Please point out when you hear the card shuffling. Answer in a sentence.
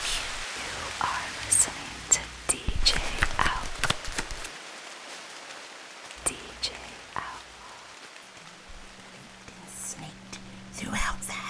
The card shuffling can be heard from 2.6 to 4.5 s.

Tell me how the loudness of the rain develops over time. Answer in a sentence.
The loudness of the rain goes down.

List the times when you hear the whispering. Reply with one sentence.
You can hear the whispering from 0.0 to 3.6 s and from 6.2 to 11.4 s.